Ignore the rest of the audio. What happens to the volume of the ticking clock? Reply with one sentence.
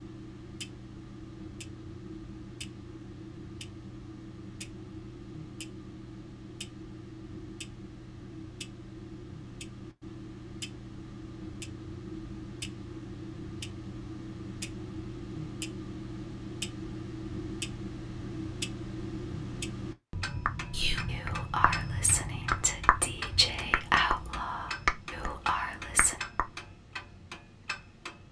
The volume of the ticking clock goes up.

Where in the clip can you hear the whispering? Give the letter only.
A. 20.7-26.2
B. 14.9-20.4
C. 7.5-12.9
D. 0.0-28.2
A.